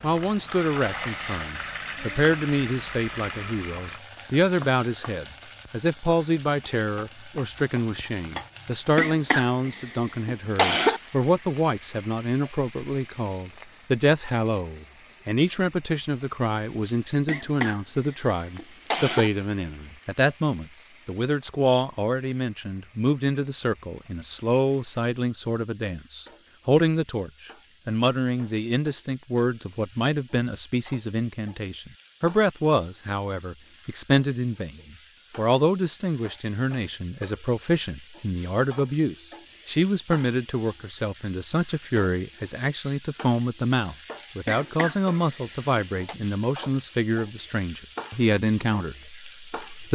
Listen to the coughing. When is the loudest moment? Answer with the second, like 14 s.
11 s.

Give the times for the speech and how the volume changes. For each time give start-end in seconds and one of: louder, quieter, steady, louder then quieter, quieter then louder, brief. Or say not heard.
0.0-49.9 steady.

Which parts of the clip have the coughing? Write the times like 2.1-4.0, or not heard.
8.9-11.0, 17.2-19.3, 44.5-46.1.